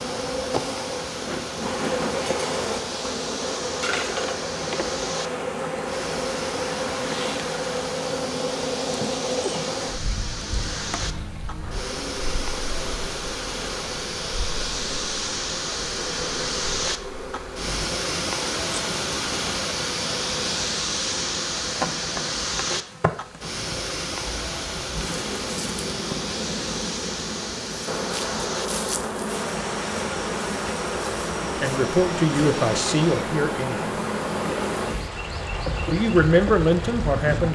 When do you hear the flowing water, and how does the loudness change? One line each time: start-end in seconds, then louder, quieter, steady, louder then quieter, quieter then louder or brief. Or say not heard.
0.0-37.5 louder then quieter.